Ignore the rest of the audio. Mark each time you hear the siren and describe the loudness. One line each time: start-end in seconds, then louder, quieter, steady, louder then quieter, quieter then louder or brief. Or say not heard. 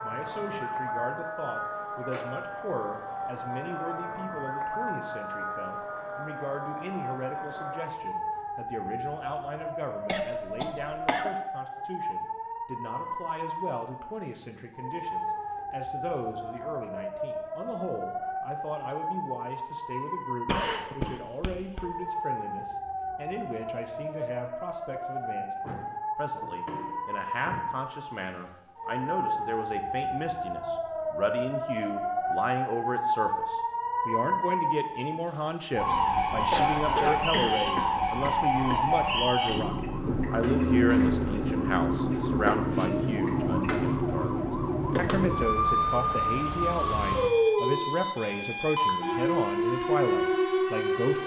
0.0-51.2 louder.